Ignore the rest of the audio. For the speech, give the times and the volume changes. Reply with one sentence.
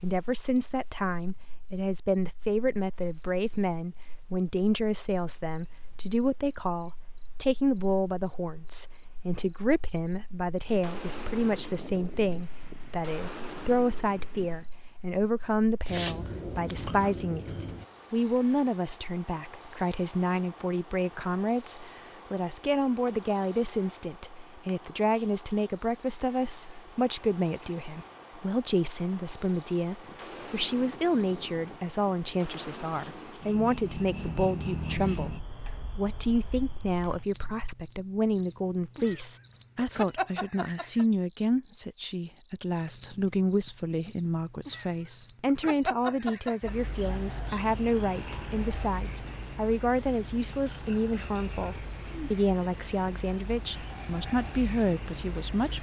You can hear the speech from 0.0 to 55.7 s, at a steady volume.